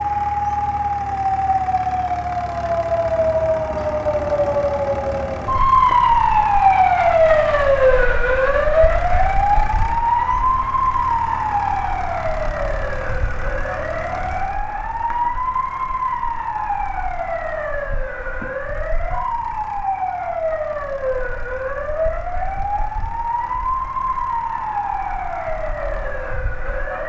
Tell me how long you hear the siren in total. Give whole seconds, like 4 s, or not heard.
27 s.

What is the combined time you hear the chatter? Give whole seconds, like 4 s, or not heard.
not heard.